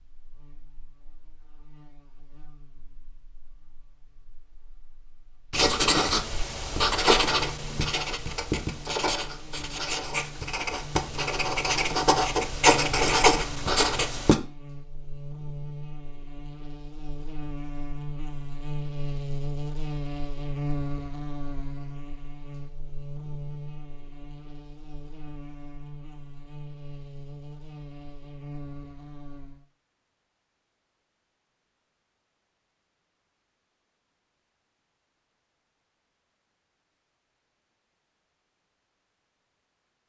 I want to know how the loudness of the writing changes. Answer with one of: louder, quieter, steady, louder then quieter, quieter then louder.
quieter then louder.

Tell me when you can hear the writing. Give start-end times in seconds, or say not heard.
5.5-14.4.